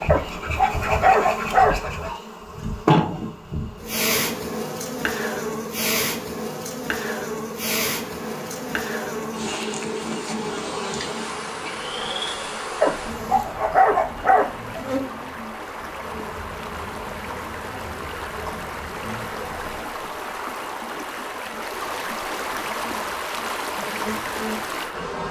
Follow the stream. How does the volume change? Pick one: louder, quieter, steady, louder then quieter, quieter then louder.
louder.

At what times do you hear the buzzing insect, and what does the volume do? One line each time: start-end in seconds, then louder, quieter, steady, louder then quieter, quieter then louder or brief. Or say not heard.
0.0-19.9 quieter
22.6-25.2 brief.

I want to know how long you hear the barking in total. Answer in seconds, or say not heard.
4 s.